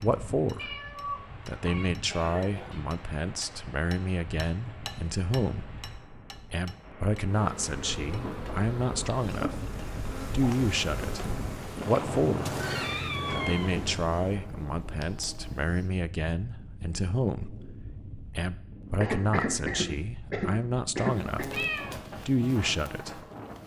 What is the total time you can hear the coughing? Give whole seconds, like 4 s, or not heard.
3 s.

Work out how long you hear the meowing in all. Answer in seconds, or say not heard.
4 s.